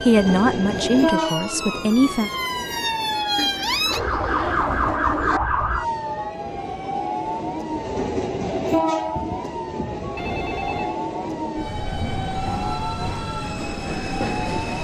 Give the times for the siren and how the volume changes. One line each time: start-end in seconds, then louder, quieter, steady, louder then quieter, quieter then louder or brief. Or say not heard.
0.0-14.8 louder then quieter.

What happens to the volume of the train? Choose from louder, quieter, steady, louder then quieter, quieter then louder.
quieter then louder.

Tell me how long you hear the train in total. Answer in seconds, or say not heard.
15 s.